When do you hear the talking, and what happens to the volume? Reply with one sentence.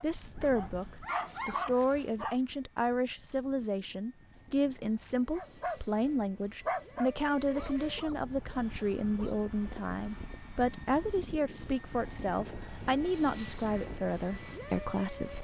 The talking can be heard from 0.0 to 15.3 s, at a steady volume.